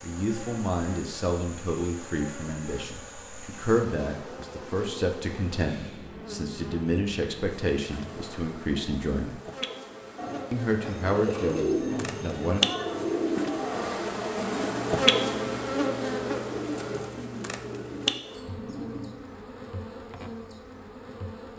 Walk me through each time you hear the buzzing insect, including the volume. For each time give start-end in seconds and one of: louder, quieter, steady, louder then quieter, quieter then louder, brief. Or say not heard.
0.0-21.5 louder then quieter.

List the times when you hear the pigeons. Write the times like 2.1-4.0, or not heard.
10.2-19.1.